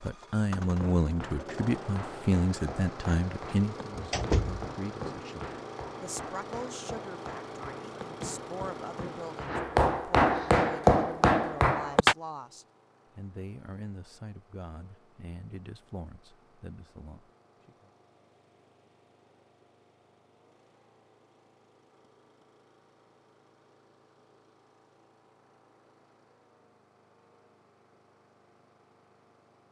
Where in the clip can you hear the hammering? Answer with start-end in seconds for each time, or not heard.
0.6-12.2.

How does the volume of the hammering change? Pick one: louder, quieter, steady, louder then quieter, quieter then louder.
louder.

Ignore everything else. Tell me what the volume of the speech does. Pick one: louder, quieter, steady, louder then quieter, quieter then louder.
quieter.